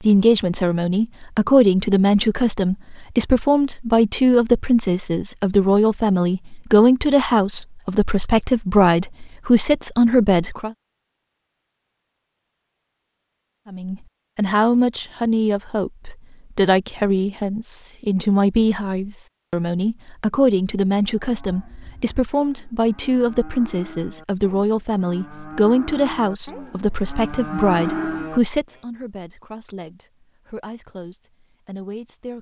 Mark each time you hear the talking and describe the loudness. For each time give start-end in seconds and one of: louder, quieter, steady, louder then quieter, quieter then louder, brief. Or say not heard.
0.0-10.8 steady
13.7-32.3 quieter.